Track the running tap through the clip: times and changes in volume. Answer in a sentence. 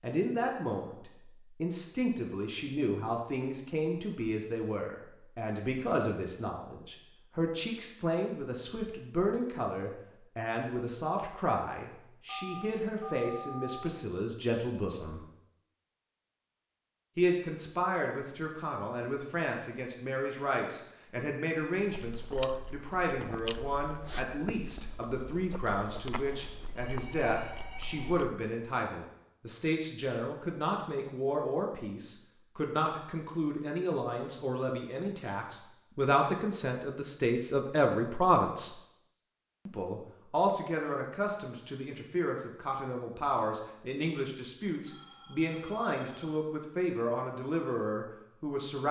The running tap can't be heard in this clip.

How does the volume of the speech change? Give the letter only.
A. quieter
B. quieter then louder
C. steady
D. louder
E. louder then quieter
C.